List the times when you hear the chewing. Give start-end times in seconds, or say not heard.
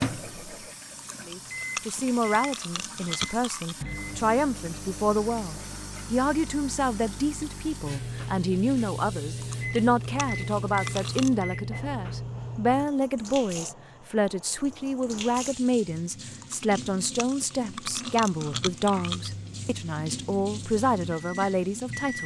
0.9-3.8, 9.4-11.4, 16.4-19.3.